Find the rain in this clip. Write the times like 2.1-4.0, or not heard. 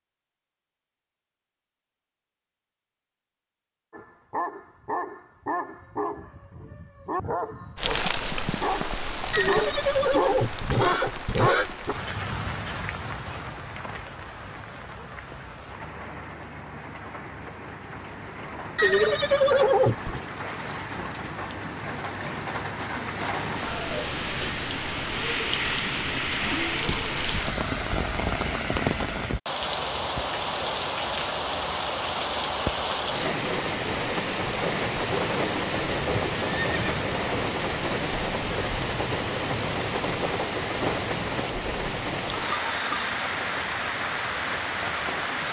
7.8-45.4.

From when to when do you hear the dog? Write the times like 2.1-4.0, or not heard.
3.9-11.9.